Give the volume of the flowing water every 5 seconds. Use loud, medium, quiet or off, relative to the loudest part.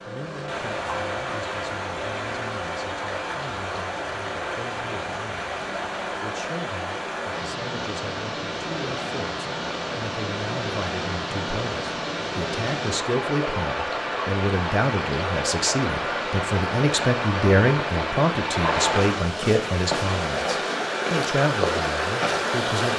medium, medium, loud, loud, loud.